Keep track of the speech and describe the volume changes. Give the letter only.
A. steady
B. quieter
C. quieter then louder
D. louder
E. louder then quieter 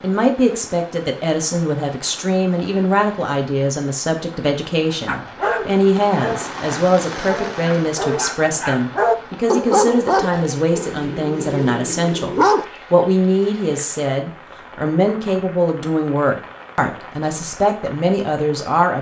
A.